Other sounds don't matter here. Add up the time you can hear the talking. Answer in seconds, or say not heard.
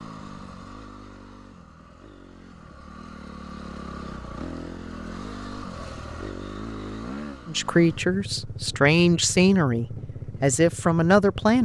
4 s.